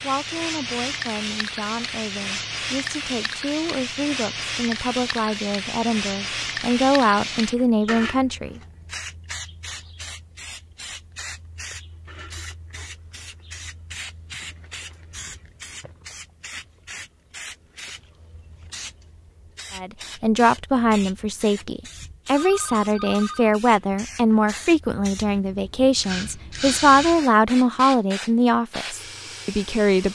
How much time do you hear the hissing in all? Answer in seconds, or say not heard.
30 s.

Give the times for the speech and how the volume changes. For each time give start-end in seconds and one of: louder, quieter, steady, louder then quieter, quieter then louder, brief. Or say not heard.
0.0-8.6 louder
19.8-30.1 steady.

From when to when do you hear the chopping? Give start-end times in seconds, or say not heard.
not heard.